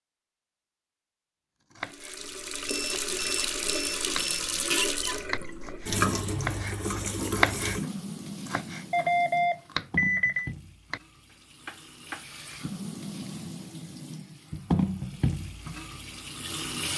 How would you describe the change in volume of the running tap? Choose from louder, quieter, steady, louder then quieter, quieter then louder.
quieter then louder.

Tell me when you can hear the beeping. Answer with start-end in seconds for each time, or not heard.
2.6-4.4, 8.9-10.5.